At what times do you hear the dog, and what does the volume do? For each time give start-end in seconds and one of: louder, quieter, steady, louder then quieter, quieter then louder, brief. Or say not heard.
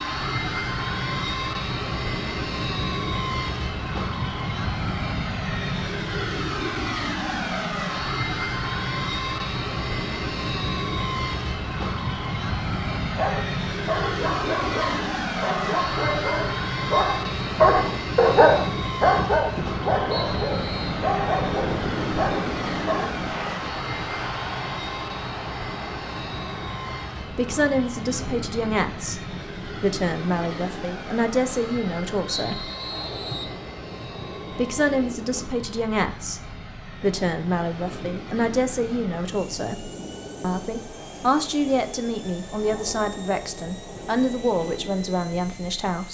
13.0-23.1 louder then quieter.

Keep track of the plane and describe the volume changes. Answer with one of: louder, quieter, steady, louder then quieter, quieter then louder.
quieter.